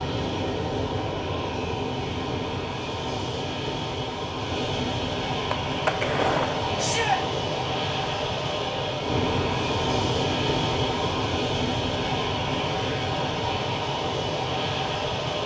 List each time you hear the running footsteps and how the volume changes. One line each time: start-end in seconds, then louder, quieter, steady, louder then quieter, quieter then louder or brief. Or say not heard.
not heard.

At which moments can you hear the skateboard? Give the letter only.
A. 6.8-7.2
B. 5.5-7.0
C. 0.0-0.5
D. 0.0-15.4
B.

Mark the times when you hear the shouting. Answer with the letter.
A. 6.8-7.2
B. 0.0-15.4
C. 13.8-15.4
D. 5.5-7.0
A.